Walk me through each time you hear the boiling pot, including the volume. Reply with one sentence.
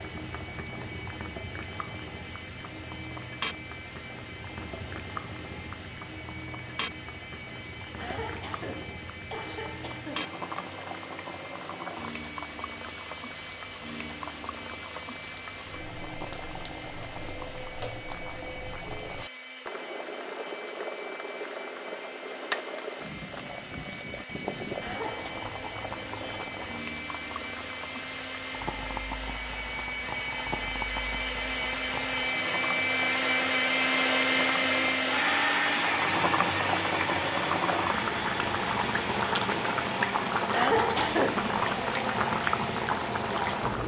You can hear the boiling pot from 0.0 to 43.8 s, getting louder.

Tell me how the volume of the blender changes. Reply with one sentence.
The loudness of the blender goes up.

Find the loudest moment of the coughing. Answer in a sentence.
The volume of the coughing peaks at 41 seconds.